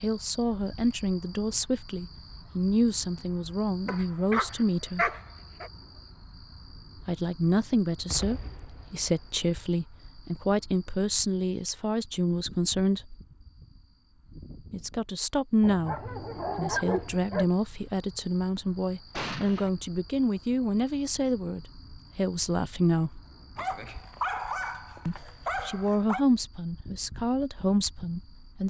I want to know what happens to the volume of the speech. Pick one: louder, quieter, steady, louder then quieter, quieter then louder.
steady.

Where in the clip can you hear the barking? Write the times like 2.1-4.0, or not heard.
3.9-5.7, 15.6-17.4, 23.6-26.2.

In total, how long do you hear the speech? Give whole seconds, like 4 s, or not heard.
23 s.